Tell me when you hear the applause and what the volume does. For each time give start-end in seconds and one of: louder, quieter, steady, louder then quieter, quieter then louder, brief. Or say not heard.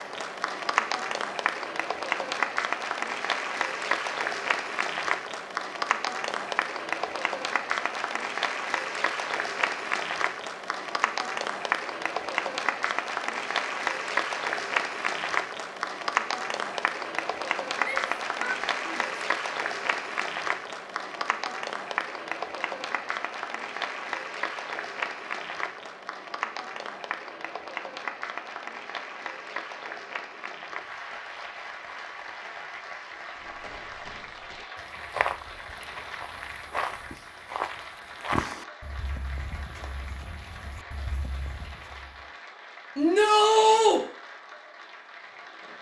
0.0-45.7 quieter.